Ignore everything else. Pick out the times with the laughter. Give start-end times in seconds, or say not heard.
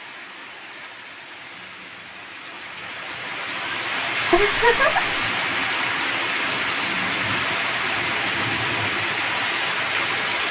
4.3-5.1.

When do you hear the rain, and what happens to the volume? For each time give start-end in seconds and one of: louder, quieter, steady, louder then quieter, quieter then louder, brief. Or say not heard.
0.0-10.4 louder.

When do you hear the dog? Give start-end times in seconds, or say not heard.
not heard.